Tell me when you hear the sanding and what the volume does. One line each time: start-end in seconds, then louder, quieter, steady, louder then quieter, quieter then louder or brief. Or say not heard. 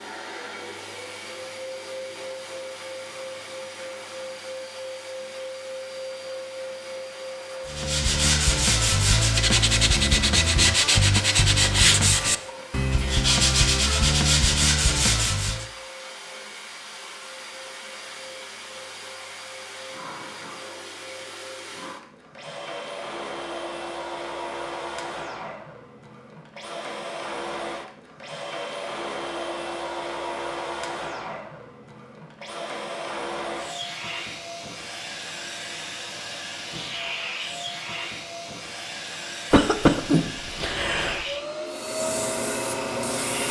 7.7-15.7 steady
41.7-43.4 brief.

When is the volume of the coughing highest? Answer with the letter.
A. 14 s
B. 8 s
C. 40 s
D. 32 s
C.